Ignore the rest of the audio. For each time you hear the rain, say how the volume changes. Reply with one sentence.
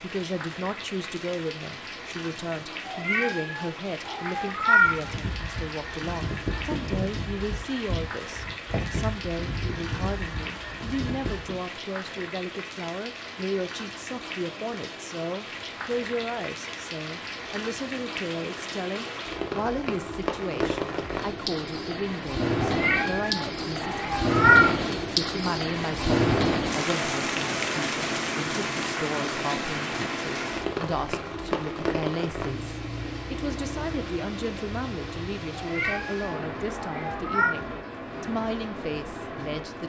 The rain can be heard from 0.0 to 39.8 s, getting louder then quieter.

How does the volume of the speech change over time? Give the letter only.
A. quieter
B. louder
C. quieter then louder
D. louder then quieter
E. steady
E.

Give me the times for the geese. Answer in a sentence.
The geese can be heard from 4.8 to 11.7 s.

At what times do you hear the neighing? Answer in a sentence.
The neighing can't be heard in this clip.